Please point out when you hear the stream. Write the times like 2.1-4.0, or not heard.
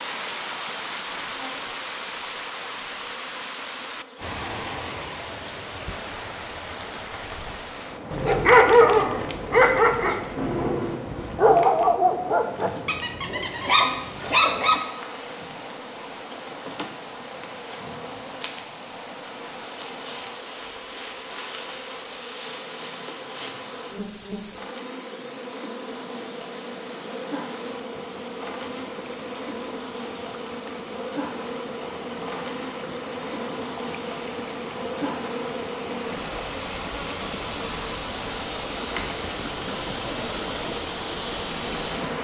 0.0-42.1.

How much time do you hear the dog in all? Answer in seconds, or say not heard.
7 s.